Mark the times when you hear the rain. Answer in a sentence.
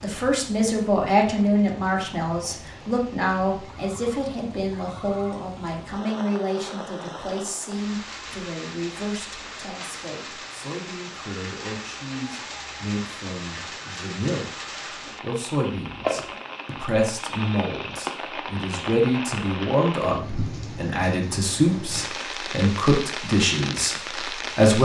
You can hear the rain from 0.0 to 24.8 s.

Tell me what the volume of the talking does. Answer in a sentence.
The volume of the talking goes down, then up.